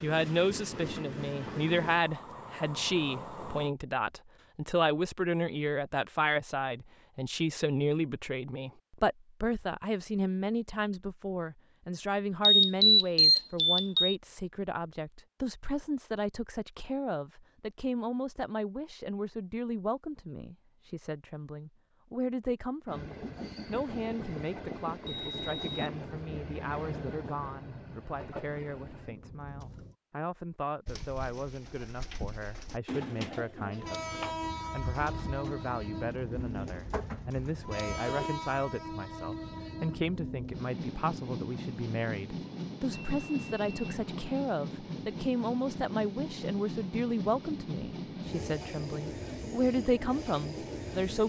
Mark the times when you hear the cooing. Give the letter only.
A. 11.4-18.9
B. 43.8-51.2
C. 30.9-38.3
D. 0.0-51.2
C.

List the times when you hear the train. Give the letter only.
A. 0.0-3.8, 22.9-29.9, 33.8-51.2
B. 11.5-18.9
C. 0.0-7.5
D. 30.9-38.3
A.